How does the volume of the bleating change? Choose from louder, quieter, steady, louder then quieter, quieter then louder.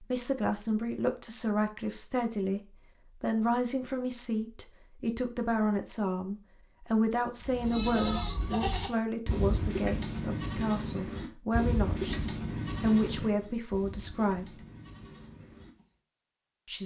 quieter.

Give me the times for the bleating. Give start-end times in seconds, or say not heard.
7.4-15.8.